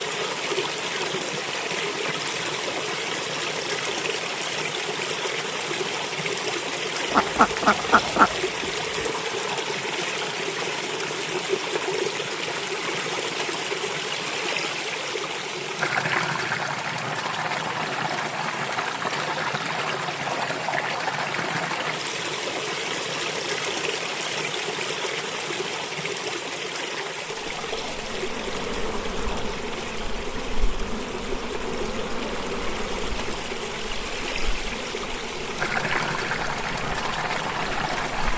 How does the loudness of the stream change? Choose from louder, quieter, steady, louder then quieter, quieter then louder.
steady.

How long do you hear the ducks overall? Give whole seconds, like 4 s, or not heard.
2 s.